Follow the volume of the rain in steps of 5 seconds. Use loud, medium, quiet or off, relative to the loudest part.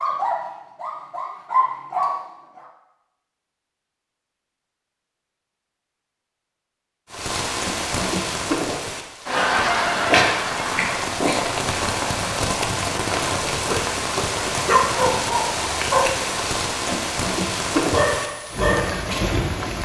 off, loud, loud, loud.